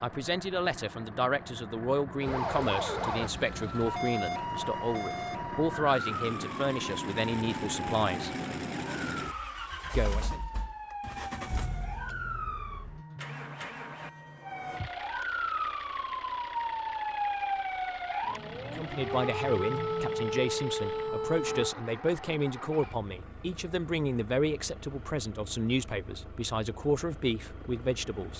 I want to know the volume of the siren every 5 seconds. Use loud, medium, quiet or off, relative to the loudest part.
loud, medium, medium, loud, loud, off.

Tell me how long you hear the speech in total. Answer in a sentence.
The speech can be heard for 18 seconds in total.